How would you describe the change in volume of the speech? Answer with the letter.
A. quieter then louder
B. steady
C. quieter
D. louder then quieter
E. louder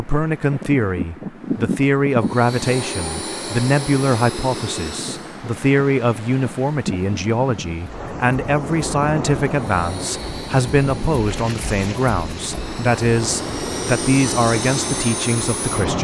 B.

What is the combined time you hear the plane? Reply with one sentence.
The plane can be heard for 10 seconds in total.